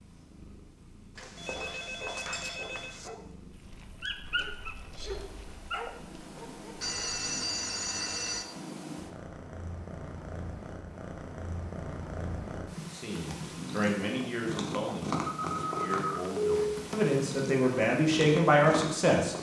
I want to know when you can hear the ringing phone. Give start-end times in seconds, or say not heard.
1.1-3.1, 6.8-8.4, 15.3-16.6.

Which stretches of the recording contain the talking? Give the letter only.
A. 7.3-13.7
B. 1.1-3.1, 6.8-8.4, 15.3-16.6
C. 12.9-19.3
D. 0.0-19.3
C.